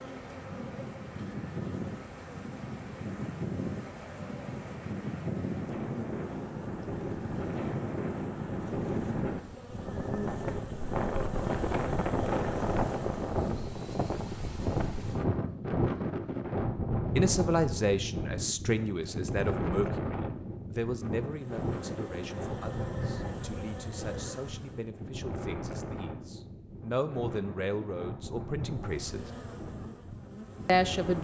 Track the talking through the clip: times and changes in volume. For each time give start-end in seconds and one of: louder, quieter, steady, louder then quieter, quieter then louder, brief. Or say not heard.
17.1-29.3 quieter then louder
30.6-31.1 brief.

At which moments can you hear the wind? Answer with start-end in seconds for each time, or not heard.
0.0-31.1.